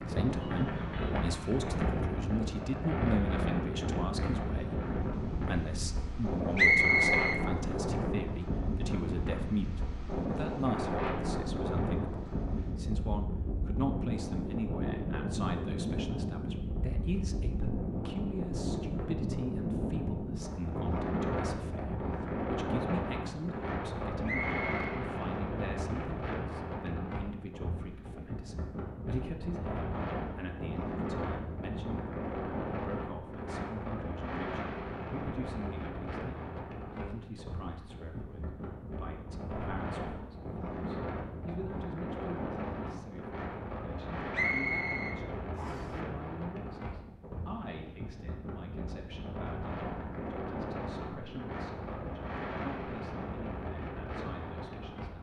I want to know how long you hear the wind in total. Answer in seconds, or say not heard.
55 s.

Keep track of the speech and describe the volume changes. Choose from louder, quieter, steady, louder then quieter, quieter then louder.
quieter.